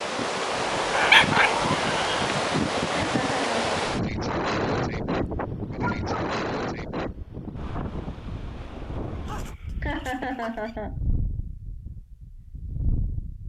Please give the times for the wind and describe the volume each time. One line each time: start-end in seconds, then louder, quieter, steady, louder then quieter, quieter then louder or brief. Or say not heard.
0.0-13.4 quieter.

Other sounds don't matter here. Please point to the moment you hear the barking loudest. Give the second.
1 s.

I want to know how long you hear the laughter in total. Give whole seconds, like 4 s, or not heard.
2 s.